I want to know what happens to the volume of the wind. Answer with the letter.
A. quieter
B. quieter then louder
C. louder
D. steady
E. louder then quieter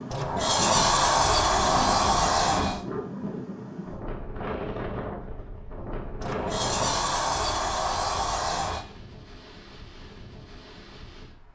A.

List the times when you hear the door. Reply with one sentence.
You can hear the door from 0.1 to 2.9 s and from 6.2 to 8.8 s.